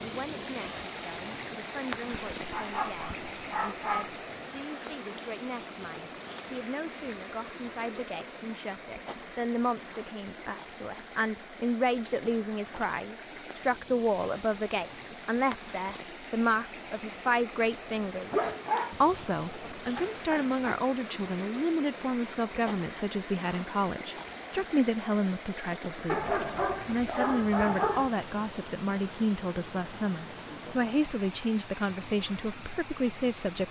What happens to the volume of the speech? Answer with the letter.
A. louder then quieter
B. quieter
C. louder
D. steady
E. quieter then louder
C.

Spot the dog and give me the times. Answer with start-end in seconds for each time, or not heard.
2.1-4.2, 18.3-20.8, 26.1-28.1.